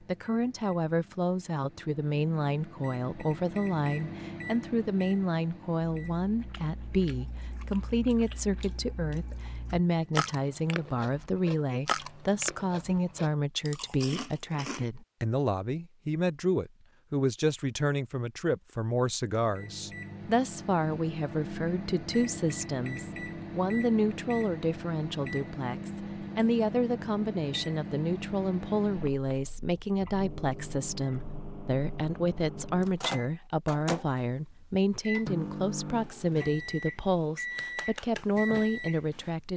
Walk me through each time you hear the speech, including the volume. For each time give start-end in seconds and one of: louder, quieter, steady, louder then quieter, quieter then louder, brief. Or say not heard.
0.0-39.5 steady.